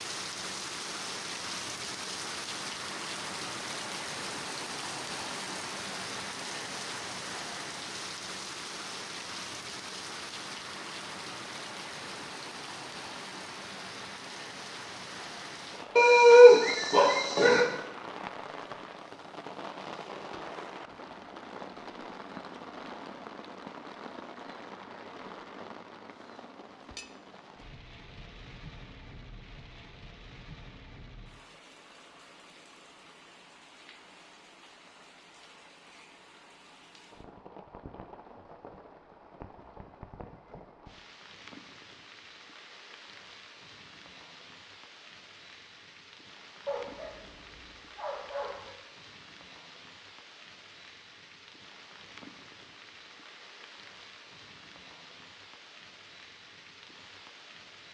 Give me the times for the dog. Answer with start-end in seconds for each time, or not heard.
15.9-17.6, 46.6-48.8.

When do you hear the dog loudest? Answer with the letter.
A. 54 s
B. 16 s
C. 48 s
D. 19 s
B.